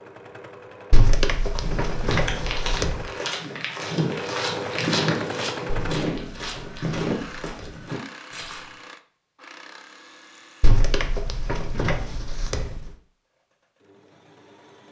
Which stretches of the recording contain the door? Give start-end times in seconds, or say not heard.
0.9-3.0, 5.7-7.8, 10.6-12.9.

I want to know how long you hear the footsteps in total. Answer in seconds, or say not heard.
7 s.